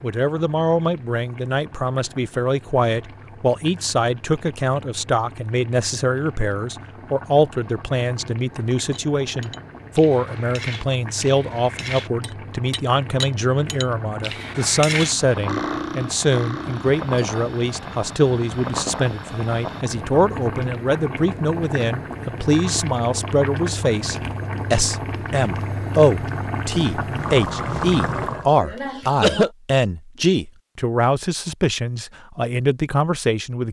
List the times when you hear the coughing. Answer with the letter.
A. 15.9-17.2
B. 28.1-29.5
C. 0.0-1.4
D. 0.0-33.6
B.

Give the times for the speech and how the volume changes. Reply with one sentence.
You can hear the speech from 0.0 to 33.6 s, at a steady volume.